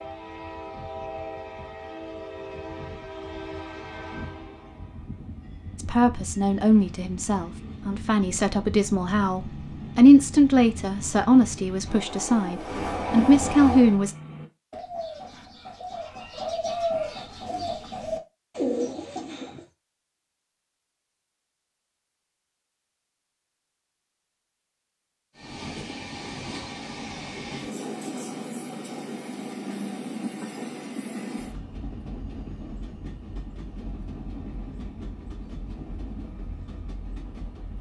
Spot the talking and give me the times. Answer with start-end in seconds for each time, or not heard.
5.8-14.2.